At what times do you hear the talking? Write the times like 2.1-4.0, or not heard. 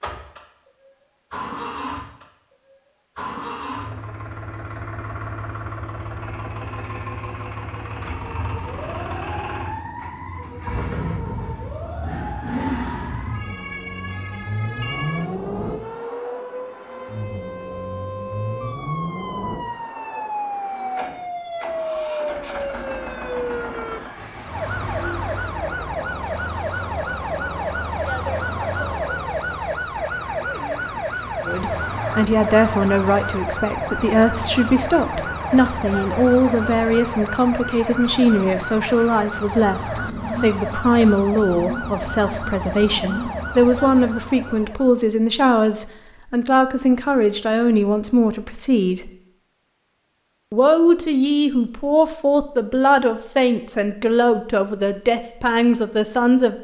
31.4-49.1, 50.5-56.5.